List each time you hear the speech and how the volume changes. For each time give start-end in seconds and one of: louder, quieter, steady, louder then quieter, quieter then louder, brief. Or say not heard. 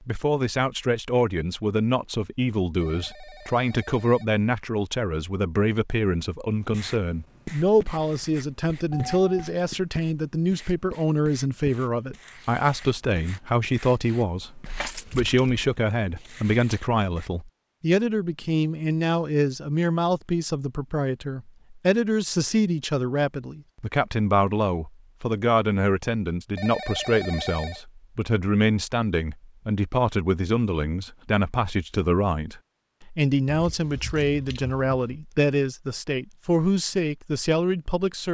0.1-38.2 steady.